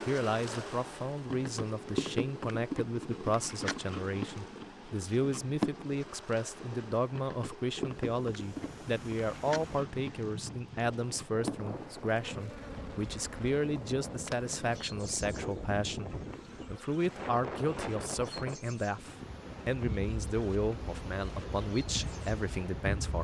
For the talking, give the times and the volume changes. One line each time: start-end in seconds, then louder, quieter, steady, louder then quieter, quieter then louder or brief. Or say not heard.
0.1-23.1 steady.